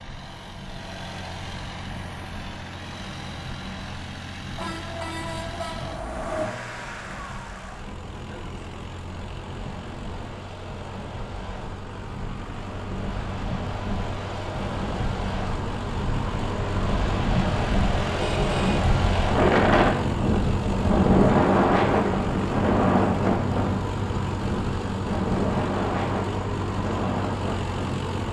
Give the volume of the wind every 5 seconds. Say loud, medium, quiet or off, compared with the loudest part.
quiet, quiet, quiet, loud, loud, medium.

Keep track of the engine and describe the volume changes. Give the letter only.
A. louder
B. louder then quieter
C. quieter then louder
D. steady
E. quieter
A.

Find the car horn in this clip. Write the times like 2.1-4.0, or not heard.
4.5-6.5, 18.3-18.8.